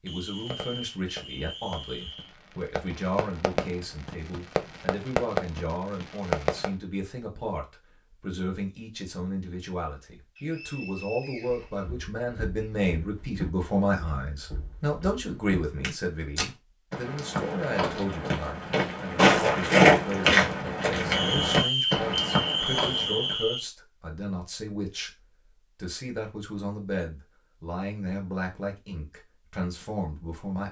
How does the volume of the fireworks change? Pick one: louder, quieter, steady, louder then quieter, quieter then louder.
louder.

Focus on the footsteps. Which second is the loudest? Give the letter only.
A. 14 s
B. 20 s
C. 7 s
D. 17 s
B.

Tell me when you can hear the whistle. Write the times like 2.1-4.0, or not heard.
0.1-2.3, 10.3-11.8, 21.1-23.6.